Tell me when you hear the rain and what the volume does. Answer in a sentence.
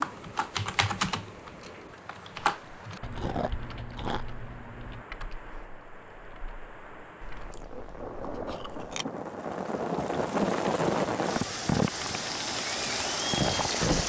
The rain can be heard from 0.0 to 14.0 s, getting louder.